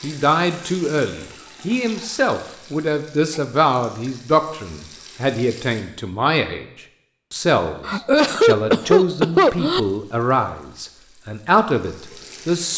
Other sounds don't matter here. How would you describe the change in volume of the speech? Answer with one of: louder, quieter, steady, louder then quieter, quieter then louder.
steady.